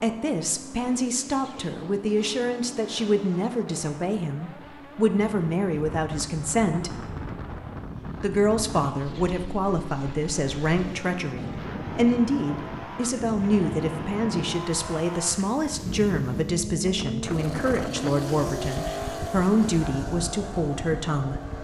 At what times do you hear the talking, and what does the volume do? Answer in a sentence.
The talking can be heard from 0.0 to 7.1 s, at a steady volume; and from 8.2 to 21.4 s, at a steady volume.